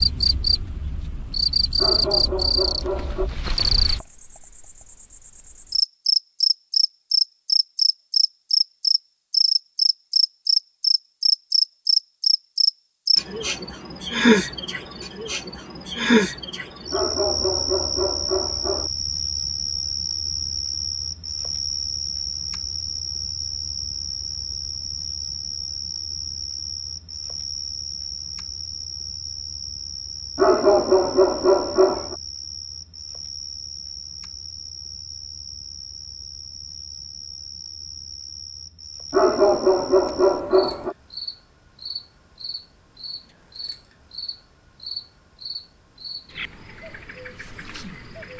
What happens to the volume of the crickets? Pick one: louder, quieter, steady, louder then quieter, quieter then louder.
quieter.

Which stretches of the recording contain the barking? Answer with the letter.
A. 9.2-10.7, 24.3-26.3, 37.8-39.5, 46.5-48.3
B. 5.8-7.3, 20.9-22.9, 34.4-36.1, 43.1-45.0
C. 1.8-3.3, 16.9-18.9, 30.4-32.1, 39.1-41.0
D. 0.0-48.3
C.